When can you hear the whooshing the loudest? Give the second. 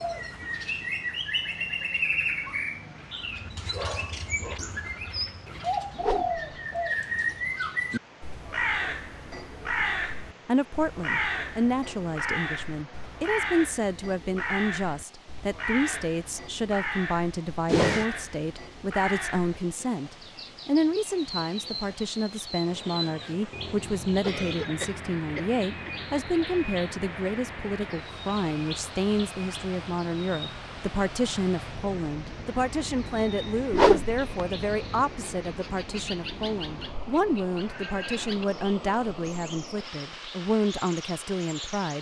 34 s.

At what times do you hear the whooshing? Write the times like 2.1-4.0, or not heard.
6.0-6.4, 17.6-18.1, 33.7-34.2.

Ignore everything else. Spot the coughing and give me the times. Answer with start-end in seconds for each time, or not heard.
24.2-26.1.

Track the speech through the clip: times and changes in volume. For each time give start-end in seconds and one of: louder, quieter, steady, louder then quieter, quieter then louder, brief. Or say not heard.
10.4-41.9 steady.